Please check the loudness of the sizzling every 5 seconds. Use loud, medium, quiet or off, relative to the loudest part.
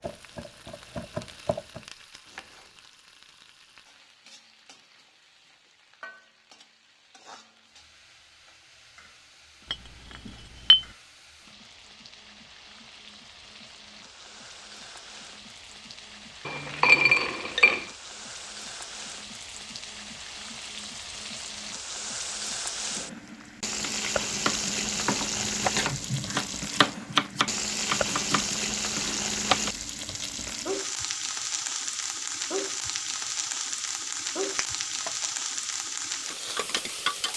quiet, quiet, quiet, quiet, loud, loud, loud, loud.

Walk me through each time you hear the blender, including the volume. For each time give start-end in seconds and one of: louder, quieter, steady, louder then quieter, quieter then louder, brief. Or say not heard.
not heard.